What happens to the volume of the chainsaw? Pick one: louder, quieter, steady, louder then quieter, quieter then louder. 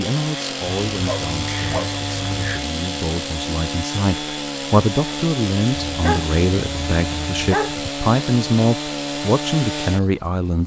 steady.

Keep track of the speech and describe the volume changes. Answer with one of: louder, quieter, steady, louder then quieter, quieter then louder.
louder.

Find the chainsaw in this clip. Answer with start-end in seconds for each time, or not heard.
0.0-10.6.